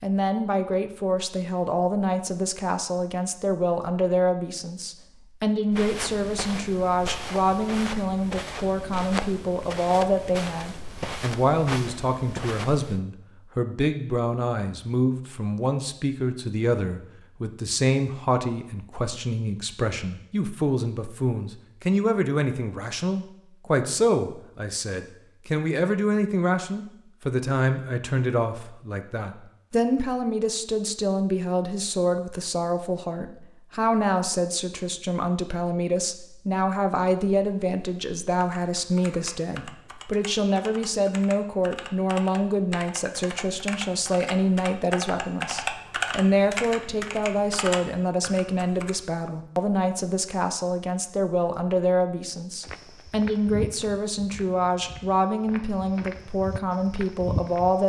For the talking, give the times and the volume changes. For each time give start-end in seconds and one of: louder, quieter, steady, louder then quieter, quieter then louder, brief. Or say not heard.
0.0-57.8 steady.